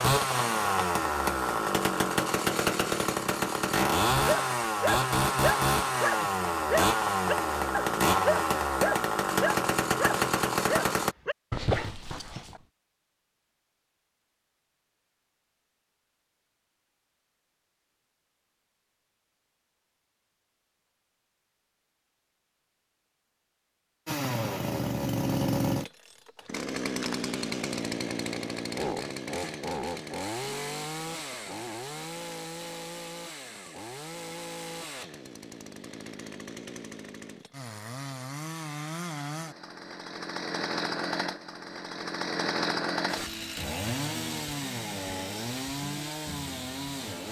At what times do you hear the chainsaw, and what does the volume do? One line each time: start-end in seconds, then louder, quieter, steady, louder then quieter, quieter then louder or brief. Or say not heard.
0.0-11.2 steady
24.1-47.2 quieter then louder.